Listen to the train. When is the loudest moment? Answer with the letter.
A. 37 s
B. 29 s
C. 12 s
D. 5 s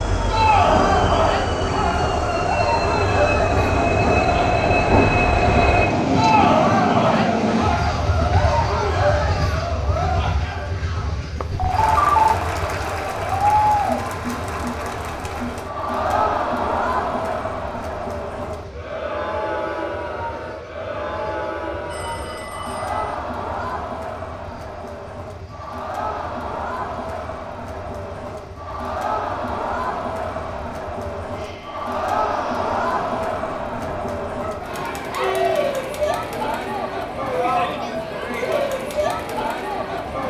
D.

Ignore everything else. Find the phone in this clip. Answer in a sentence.
The phone can be heard from 11.3 to 12.3 s and from 21.9 to 23.1 s.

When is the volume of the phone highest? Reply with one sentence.
The loudest moment of the phone is at 12 seconds.